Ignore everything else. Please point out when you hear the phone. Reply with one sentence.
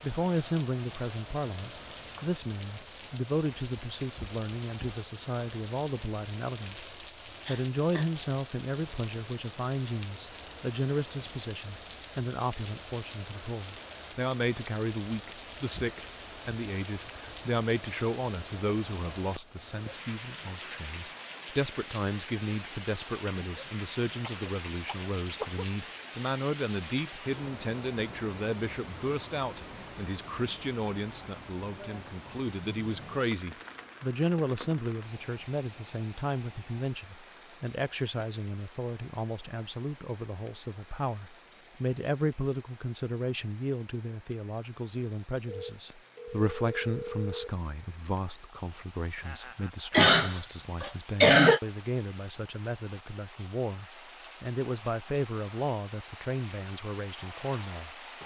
You can hear the phone from 45.5 to 47.5 s.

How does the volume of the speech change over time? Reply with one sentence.
The loudness of the speech stays about the same.